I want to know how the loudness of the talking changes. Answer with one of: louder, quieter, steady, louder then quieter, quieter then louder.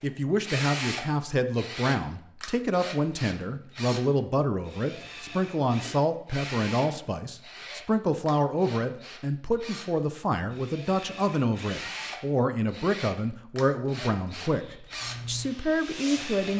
steady.